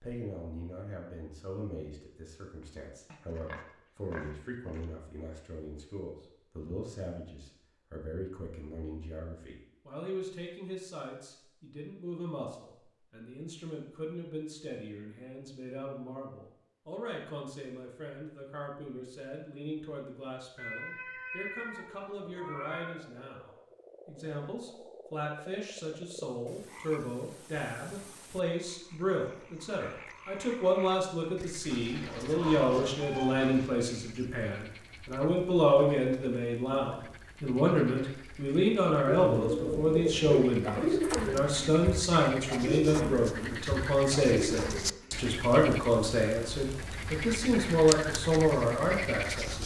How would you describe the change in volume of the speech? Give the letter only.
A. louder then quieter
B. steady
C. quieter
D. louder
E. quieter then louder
D.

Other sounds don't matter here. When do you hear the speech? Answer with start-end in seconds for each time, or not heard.
0.0-49.6.